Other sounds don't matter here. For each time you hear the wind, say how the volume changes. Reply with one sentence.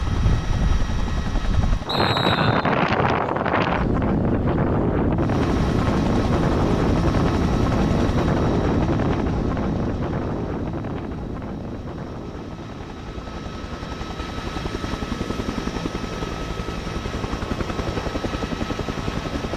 You can hear the wind from 0.0 to 19.5 s, getting quieter.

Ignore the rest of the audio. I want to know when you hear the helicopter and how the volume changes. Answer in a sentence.
You can hear the helicopter briefly from 0.0 to 2.0 s; and from 5.2 to 19.5 s, getting quieter then louder.